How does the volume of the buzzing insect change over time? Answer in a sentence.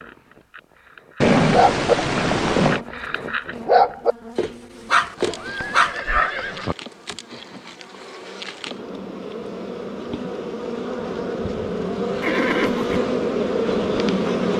The loudness of the buzzing insect goes up.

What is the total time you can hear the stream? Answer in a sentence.
You can't hear the stream here.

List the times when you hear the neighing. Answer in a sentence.
You can hear the neighing from 1.2 to 2.9 s, from 5.2 to 6.8 s and from 12.2 to 13.0 s.